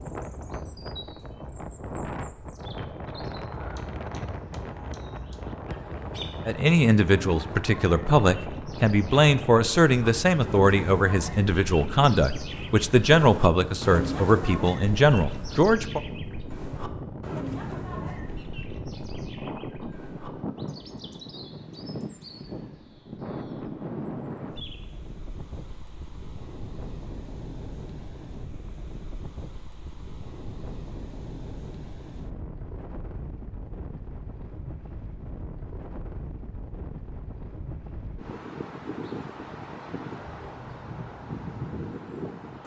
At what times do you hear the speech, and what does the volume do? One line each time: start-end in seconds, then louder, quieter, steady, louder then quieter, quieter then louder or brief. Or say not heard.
6.5-16.0 steady.